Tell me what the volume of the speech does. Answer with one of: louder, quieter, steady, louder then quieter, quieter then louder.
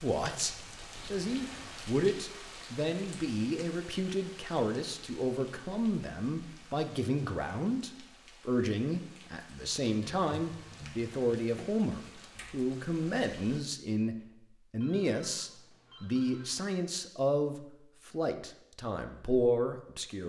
steady.